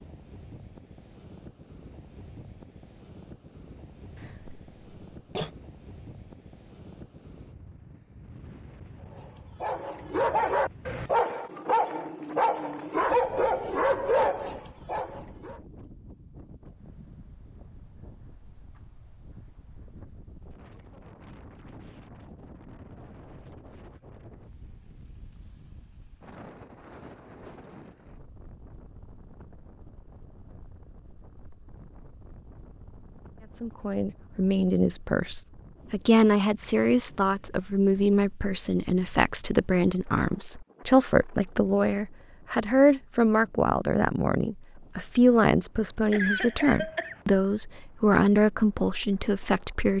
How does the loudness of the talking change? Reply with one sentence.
The volume of the talking stays about the same.